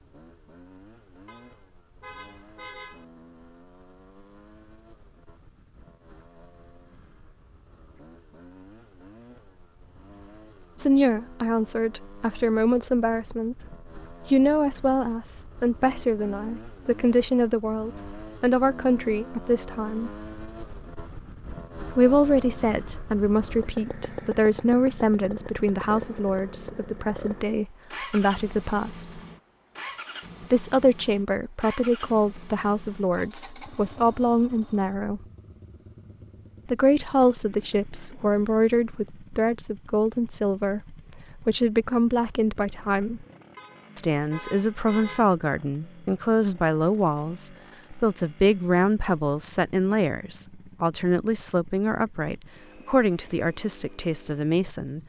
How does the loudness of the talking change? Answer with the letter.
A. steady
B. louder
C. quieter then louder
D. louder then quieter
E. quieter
A.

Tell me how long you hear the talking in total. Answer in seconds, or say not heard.
39 s.